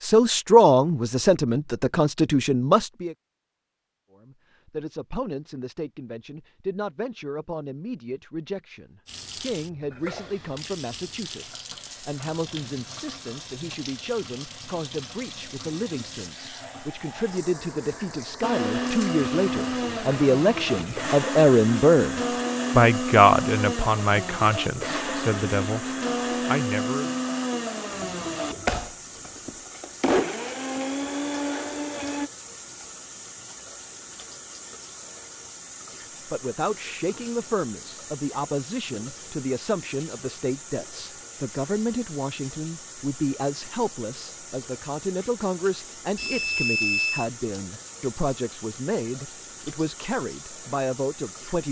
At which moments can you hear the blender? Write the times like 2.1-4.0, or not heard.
18.4-32.3.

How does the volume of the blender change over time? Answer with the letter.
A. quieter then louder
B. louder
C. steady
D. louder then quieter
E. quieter
C.